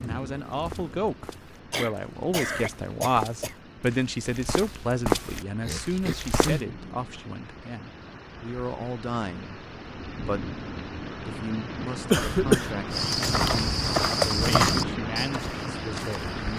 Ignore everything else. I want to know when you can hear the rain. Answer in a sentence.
You can hear the rain from 0.0 to 16.5 s.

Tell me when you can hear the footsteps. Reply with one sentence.
You can hear the footsteps from 0.0 to 6.6 s and from 12.9 to 16.5 s.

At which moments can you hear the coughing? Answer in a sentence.
You can hear the coughing from 1.7 to 3.5 s, from 5.6 to 6.7 s and from 12.1 to 13.1 s.